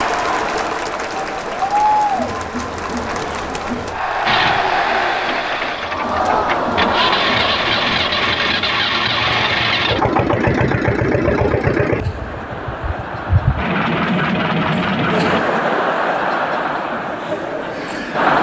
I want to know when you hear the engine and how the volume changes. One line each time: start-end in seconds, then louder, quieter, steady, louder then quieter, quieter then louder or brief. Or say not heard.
4.2-15.4 louder.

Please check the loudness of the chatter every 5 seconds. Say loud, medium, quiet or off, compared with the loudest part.
loud, loud, medium, loud.